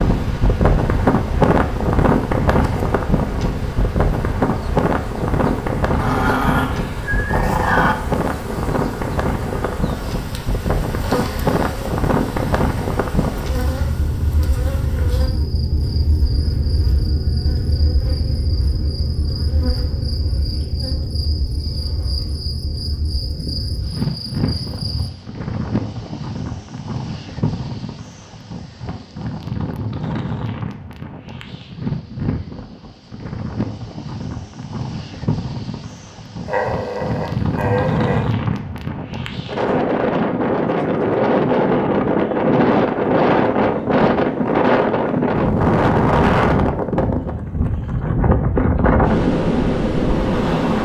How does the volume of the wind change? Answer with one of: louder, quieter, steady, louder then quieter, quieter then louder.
quieter then louder.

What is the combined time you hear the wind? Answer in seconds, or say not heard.
51 s.